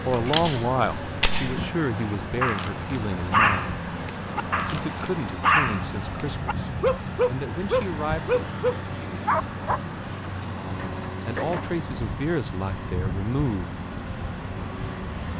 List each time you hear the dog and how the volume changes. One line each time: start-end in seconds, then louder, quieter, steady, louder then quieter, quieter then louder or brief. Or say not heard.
2.4-9.8 quieter then louder.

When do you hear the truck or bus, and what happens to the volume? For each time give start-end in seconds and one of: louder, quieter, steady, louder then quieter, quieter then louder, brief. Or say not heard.
0.0-15.3 steady.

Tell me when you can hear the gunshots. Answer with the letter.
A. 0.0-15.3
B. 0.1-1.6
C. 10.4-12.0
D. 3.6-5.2
B.